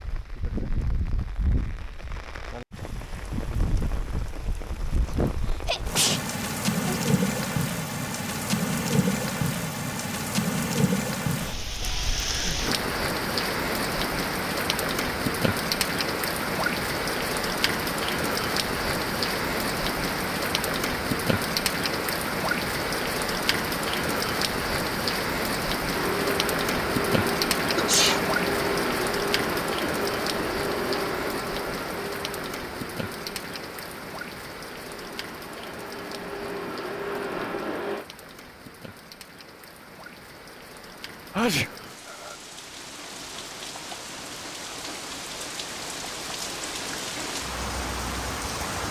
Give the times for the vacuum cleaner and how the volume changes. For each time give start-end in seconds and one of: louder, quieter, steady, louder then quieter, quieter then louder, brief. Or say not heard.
25.9-38.0 quieter then louder.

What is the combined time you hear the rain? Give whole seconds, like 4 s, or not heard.
49 s.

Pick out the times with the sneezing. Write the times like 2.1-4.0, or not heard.
5.7-7.0, 27.6-28.2, 41.3-41.7.